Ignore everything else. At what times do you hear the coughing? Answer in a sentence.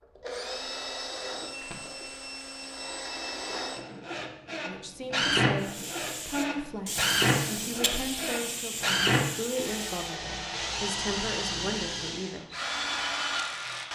The coughing can be heard from 1.6 to 2.4 s.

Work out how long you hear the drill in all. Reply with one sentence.
You can hear the drill for 14 seconds altogether.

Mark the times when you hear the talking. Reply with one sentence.
You can hear the talking from 4.7 to 12.4 s.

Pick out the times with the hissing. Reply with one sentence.
The hissing can be heard from 5.6 to 10.1 s.